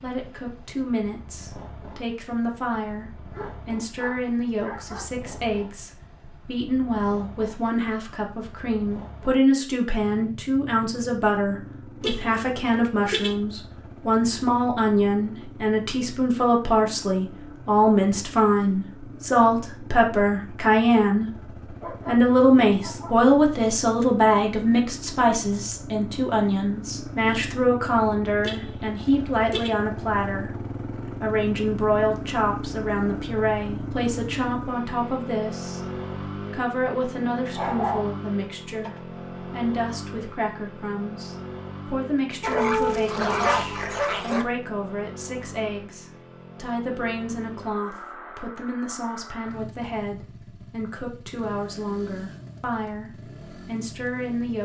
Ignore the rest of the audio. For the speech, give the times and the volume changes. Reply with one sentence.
The speech can be heard from 0.0 to 21.2 s, getting louder; and from 22.1 to 54.6 s, getting quieter.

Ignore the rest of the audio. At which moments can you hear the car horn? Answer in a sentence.
You can hear the car horn from 12.0 to 13.3 s and from 28.4 to 29.8 s.